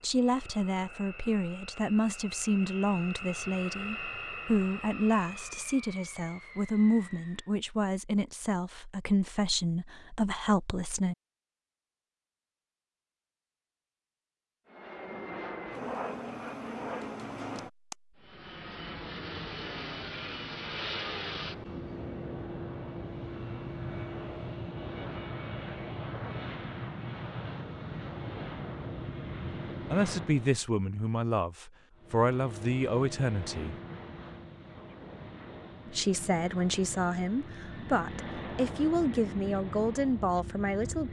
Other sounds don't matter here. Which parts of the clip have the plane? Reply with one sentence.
You can hear the plane from 0.0 to 7.5 s, from 14.7 to 30.6 s and from 31.9 to 41.0 s.